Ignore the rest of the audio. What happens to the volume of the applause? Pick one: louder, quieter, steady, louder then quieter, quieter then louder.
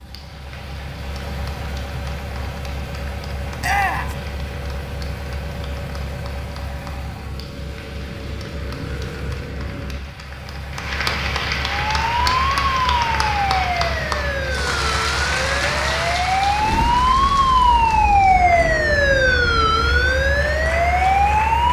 louder then quieter.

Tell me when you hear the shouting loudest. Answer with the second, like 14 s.
4 s.